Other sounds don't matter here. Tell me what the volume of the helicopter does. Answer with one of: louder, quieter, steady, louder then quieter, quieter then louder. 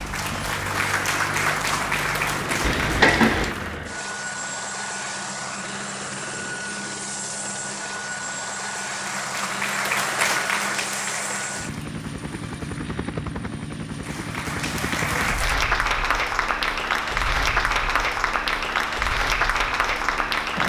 quieter.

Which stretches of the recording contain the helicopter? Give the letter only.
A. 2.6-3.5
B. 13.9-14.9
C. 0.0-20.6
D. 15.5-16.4
C.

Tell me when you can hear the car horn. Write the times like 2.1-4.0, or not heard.
2.6-3.5.